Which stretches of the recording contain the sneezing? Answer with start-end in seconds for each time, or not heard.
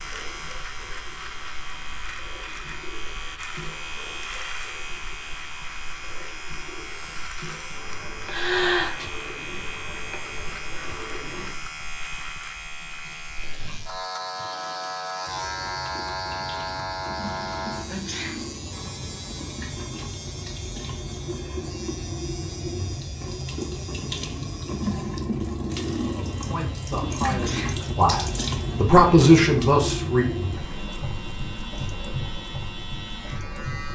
8.2-9.1, 17.9-18.4, 27.2-27.9.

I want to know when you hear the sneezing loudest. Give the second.
9 s.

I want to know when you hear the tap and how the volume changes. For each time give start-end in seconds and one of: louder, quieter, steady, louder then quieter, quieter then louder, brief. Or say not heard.
0.0-33.9 louder.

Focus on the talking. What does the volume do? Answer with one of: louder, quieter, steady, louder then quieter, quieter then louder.
louder.